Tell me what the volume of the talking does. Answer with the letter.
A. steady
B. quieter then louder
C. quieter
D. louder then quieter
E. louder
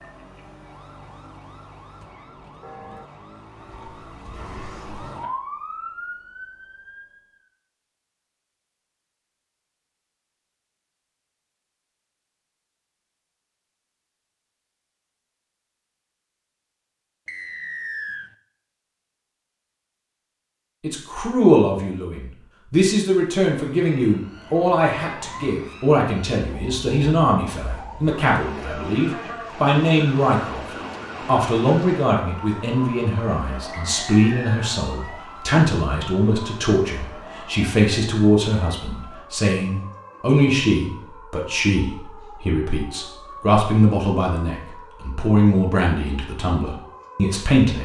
A.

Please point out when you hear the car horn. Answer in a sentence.
You can hear the car horn from 2.6 to 3.1 s.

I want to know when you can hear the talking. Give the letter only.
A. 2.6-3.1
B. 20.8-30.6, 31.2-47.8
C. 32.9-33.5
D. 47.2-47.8
B.